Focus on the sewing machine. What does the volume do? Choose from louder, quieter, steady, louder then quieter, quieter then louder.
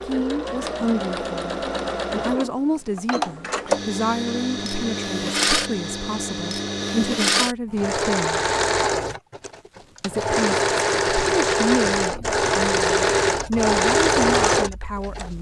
louder.